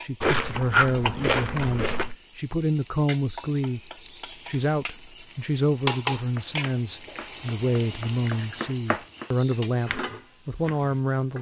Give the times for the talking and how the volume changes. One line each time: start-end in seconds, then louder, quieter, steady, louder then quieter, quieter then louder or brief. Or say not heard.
0.0-11.3 steady.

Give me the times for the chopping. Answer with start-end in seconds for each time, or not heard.
6.2-11.1.